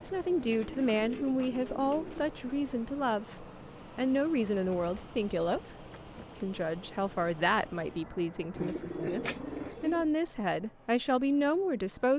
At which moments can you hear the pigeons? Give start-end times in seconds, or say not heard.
0.4-2.3, 4.5-6.5, 8.6-10.1.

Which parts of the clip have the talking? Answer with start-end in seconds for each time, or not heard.
0.0-5.6, 6.4-12.1.